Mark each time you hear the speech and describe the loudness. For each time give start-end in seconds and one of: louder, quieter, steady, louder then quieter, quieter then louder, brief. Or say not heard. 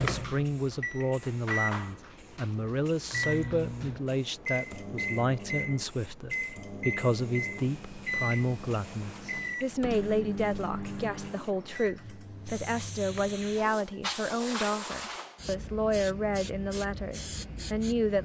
0.0-18.2 steady.